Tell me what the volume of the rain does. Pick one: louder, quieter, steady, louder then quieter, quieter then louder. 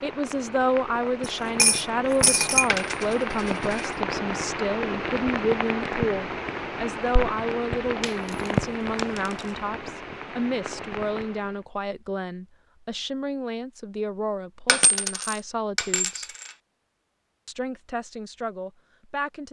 louder then quieter.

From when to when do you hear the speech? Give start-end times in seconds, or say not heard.
0.0-16.3, 17.4-19.4.